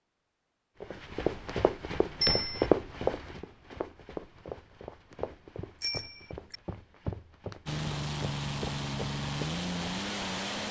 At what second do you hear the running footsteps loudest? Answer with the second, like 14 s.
3 s.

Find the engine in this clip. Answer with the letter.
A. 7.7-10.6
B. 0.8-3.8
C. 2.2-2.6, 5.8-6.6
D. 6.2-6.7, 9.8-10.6
A.